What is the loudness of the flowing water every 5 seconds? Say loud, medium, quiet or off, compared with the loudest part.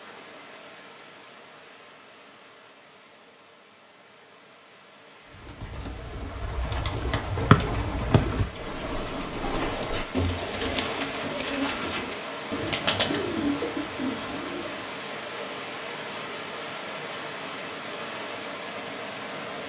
quiet, medium, loud, loud.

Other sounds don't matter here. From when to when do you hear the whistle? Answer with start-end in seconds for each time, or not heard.
7.5-8.2.